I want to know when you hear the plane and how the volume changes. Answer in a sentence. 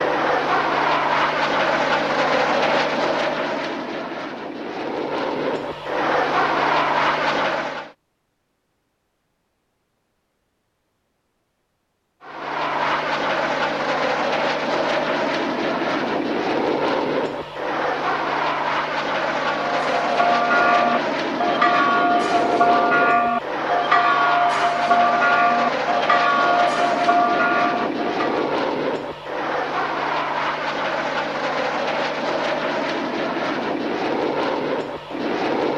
The plane can be heard from 0.0 to 7.9 s, getting quieter then louder; and from 12.2 to 35.7 s, at a steady volume.